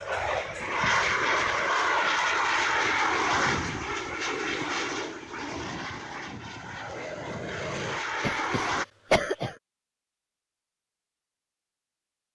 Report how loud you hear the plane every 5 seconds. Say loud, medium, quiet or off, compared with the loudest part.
loud, medium, off.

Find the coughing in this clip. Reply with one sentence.
You can hear the coughing from 8.2 to 9.6 s.